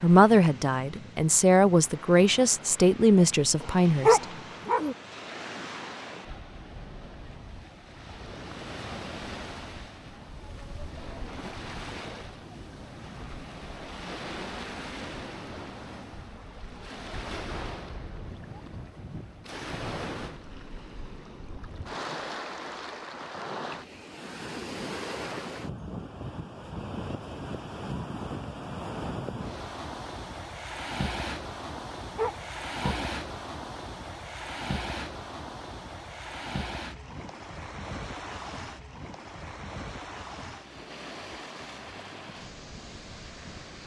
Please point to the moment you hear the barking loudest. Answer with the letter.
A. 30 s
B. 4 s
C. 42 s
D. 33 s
B.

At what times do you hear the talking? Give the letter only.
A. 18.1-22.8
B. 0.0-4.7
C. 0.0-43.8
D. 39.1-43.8
B.